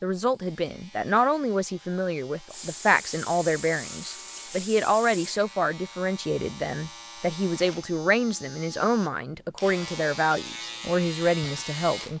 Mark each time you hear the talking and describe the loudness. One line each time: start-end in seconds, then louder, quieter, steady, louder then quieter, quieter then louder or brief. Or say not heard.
0.0-12.1 steady.